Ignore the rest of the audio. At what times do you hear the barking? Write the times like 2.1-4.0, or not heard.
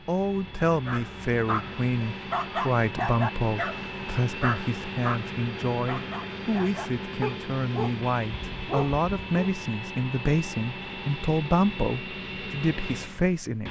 0.8-9.5.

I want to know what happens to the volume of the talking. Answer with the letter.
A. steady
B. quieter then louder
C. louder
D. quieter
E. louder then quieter
A.